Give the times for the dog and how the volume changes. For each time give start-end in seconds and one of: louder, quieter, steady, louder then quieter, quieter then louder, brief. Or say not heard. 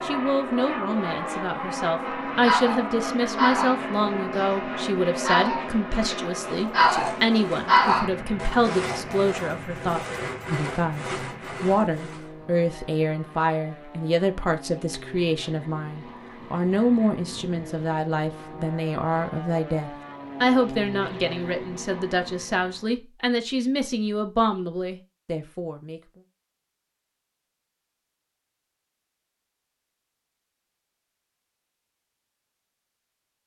2.4-9.2 quieter then louder.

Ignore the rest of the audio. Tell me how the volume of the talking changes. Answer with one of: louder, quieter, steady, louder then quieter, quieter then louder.
steady.